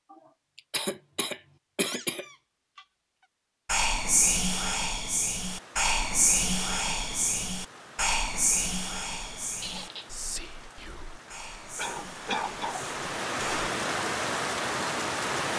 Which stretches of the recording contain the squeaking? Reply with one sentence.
The squeaking can be heard from 1.9 to 2.9 s and from 9.6 to 10.1 s.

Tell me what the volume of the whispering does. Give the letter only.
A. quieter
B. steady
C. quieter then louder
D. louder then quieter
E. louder
A.